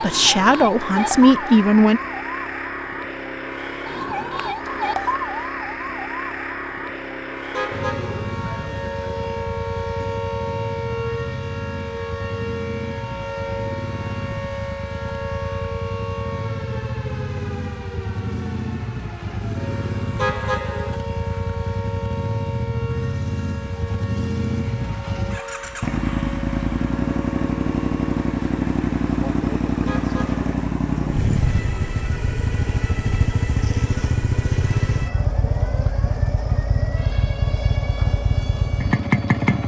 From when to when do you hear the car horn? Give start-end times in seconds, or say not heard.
7.5-8.3, 20.1-21.0, 29.9-30.4.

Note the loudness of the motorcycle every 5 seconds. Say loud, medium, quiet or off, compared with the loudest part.
medium, medium, medium, medium, medium, loud, loud, loud.